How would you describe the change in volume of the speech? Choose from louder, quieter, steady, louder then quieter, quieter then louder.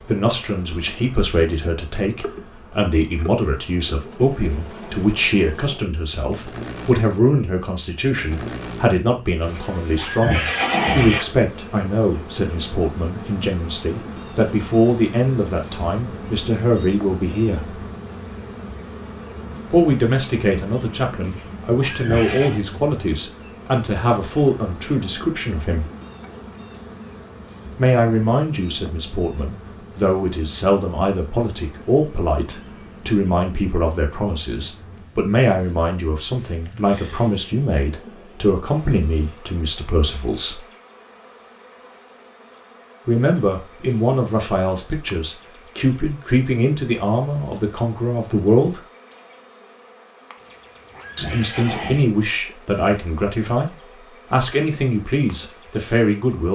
steady.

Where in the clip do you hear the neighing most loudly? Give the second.
11 s.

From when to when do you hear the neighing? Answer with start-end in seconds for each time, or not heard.
9.4-11.2, 21.2-22.6, 50.4-52.1.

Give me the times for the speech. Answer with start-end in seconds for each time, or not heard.
0.0-17.8, 19.7-25.9, 27.8-40.6, 43.0-48.8, 51.1-56.5.